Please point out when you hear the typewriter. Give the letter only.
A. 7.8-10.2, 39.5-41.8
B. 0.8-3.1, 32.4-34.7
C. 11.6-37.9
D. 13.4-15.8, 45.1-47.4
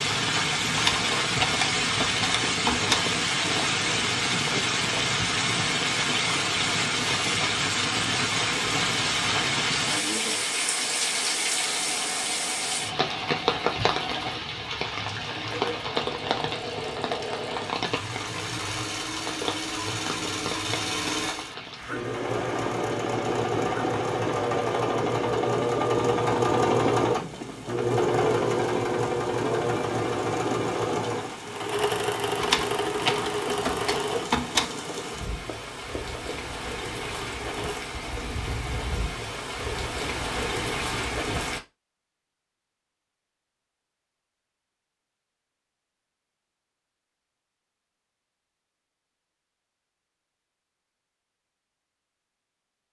B.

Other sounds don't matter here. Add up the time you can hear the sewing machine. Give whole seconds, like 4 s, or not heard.
26 s.